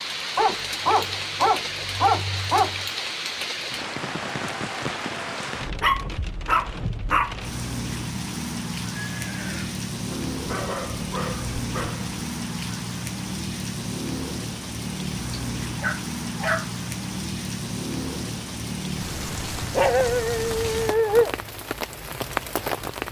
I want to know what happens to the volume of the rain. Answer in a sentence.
The loudness of the rain stays about the same.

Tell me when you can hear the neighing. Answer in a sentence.
The neighing can be heard from 8.9 to 9.8 s.